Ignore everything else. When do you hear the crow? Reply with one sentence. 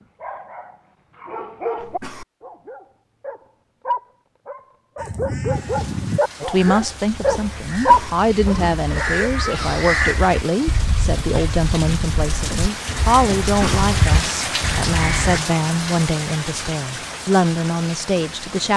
You can hear the crow from 5.0 to 15.4 s.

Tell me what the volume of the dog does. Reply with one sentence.
The volume of the dog goes down, then up.